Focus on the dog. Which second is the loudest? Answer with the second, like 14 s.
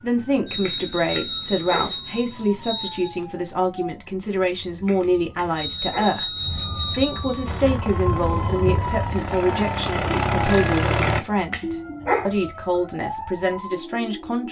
12 s.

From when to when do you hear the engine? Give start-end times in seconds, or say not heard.
7.5-11.2.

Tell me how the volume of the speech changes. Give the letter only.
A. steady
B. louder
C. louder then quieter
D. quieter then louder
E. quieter
A.